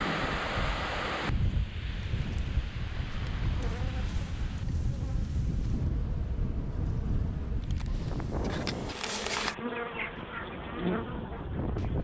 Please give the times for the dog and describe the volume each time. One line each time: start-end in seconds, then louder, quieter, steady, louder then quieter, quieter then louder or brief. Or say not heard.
not heard.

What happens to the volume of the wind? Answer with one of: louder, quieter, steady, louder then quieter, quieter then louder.
quieter.